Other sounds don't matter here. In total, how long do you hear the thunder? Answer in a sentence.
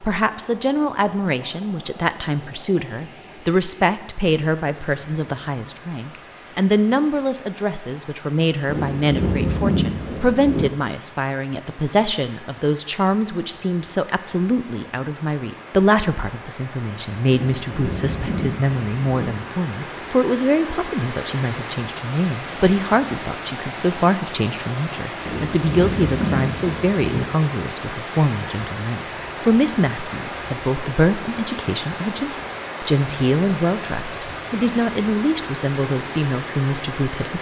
You can hear the thunder for 6 seconds altogether.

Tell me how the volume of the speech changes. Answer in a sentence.
The volume of the speech stays about the same.